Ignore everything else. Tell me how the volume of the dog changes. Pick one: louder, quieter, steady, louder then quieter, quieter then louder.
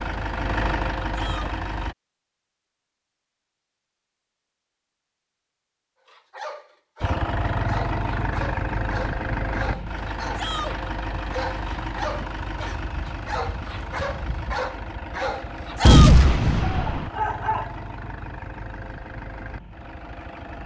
louder.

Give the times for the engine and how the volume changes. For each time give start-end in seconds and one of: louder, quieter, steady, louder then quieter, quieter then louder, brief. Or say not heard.
0.0-1.9 brief
7.0-20.6 quieter.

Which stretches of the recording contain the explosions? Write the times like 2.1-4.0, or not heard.
15.8-17.1.